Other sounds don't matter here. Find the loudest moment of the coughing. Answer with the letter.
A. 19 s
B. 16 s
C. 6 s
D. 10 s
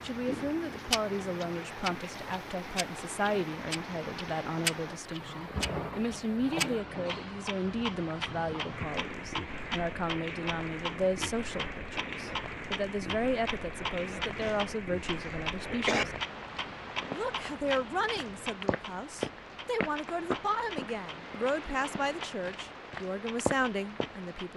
B.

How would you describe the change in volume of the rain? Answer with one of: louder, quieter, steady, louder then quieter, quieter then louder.
steady.